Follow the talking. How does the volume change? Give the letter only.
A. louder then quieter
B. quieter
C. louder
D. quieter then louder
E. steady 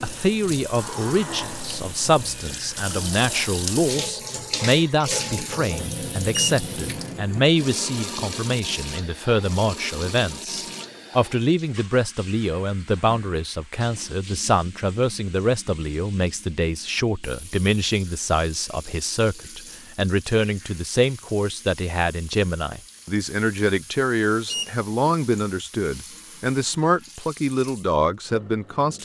E.